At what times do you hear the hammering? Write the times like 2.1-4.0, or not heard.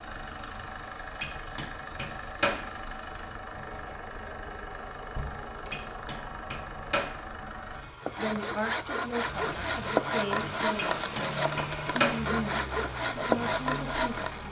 1.2-2.7, 5.7-7.2, 10.8-12.2.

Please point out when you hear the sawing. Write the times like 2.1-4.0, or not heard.
8.0-14.4.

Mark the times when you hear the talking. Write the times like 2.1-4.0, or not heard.
8.2-14.4.